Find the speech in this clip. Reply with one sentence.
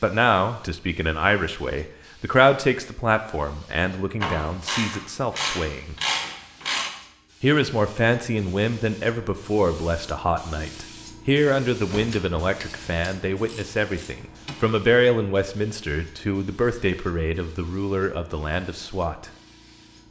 You can hear the speech from 0.0 to 6.0 s and from 7.4 to 19.3 s.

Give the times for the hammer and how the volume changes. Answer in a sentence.
The hammer can't be heard in this clip.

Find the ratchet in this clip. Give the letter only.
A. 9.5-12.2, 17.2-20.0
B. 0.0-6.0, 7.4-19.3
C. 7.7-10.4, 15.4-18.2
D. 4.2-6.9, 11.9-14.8
D.